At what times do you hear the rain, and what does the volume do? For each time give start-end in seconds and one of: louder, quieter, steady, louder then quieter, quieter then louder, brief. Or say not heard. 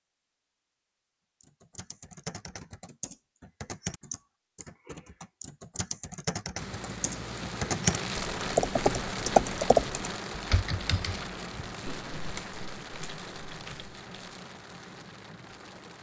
6.5-15.9 quieter.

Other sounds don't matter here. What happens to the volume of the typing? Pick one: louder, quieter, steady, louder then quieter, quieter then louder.
louder then quieter.